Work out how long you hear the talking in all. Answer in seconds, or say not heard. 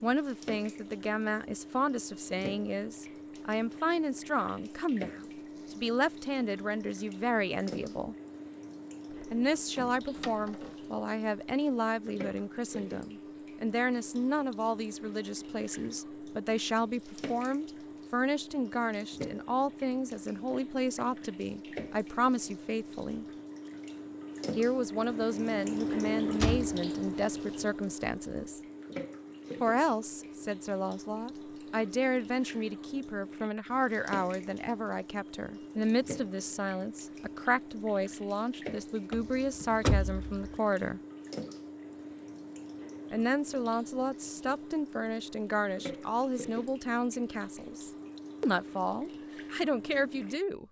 45 s.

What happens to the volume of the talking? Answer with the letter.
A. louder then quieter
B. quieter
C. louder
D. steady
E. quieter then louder
D.